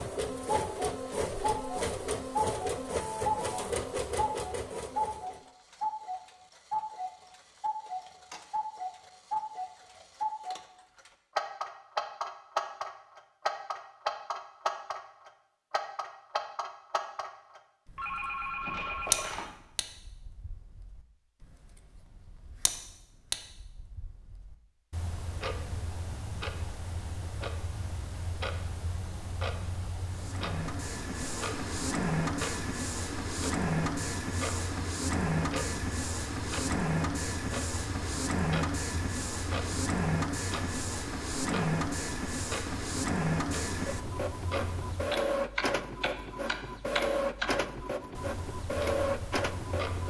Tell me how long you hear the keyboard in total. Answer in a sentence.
You can't hear the keyboard here.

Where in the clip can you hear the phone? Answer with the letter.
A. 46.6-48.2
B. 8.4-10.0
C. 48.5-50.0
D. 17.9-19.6
D.